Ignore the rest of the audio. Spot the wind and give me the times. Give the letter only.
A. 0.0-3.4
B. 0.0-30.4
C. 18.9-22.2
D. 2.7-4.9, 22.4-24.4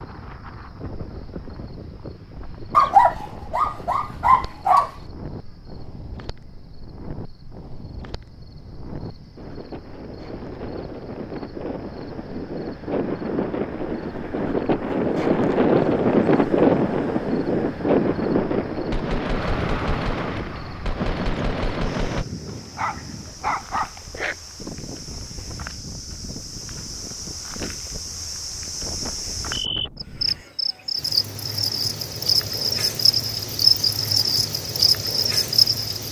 B.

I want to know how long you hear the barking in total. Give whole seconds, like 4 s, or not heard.
4 s.